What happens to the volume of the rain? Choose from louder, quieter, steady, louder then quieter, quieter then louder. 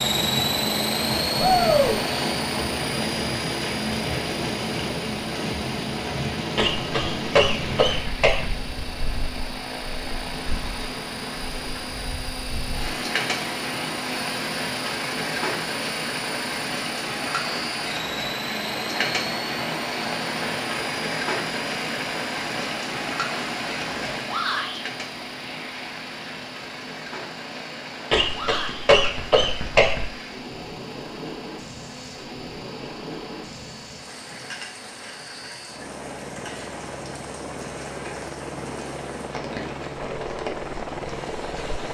quieter.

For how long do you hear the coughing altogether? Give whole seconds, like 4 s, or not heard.
4 s.